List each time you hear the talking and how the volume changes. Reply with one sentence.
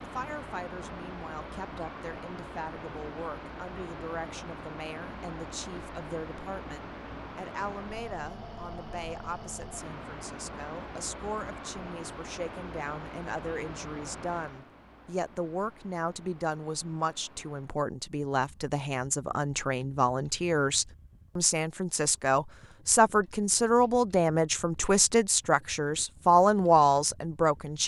You can hear the talking from 0.0 to 27.8 s, getting louder.